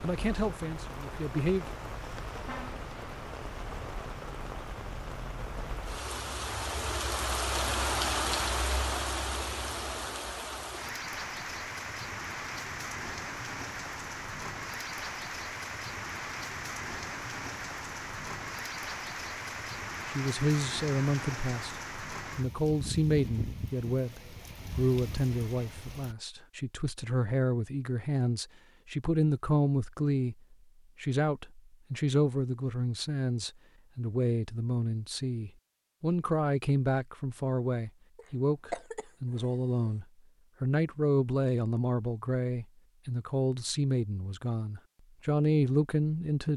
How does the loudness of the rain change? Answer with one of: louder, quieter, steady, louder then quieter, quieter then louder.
louder then quieter.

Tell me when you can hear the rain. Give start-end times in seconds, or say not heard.
0.0-26.1.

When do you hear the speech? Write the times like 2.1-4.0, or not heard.
0.0-1.8, 20.1-30.4, 31.0-46.5.